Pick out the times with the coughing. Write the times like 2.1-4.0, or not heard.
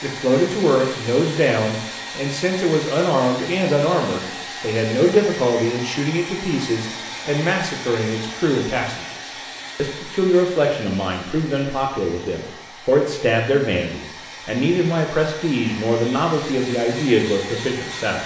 not heard.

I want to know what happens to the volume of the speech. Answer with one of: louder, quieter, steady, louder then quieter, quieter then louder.
steady.